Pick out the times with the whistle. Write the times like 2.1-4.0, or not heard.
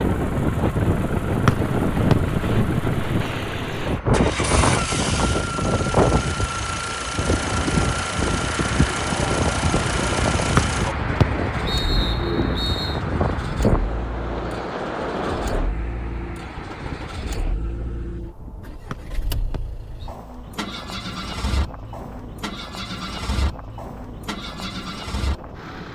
1.4-2.1, 10.6-13.0, 18.9-20.1.